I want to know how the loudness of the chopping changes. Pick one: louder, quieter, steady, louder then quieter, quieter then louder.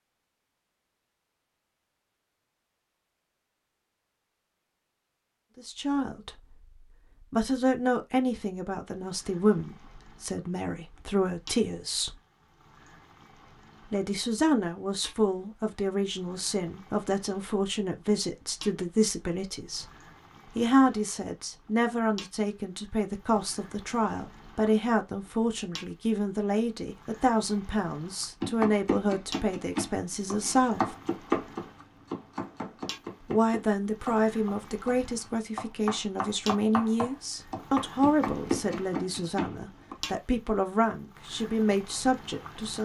quieter then louder.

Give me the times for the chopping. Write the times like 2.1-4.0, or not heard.
28.4-40.0.